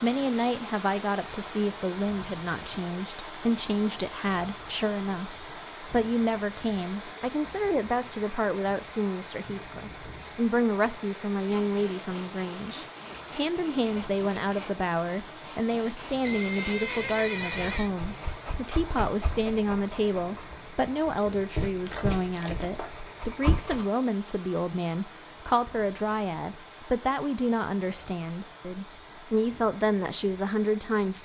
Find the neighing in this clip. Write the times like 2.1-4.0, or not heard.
16.2-17.9.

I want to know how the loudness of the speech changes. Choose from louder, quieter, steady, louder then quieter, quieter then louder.
steady.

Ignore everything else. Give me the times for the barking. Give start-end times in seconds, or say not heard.
17.4-23.9.